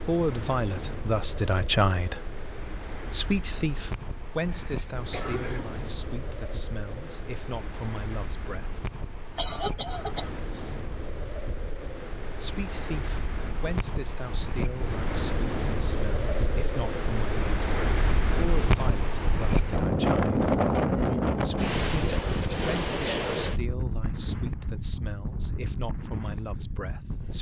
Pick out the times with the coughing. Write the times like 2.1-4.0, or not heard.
4.5-5.7, 9.3-10.3, 22.1-23.4.